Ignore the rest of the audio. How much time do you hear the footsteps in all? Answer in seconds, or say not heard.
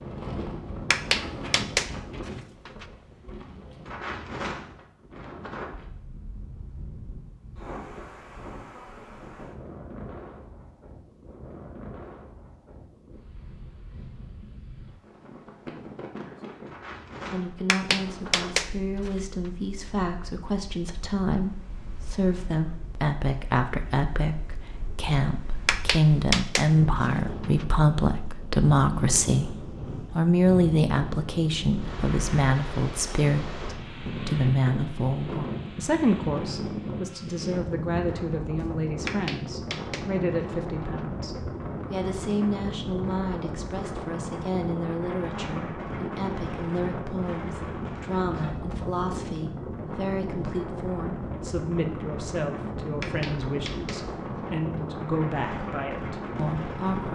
not heard.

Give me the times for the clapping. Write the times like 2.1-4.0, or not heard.
0.9-2.9, 17.6-19.2, 25.6-27.6, 39.0-41.0, 53.0-54.8.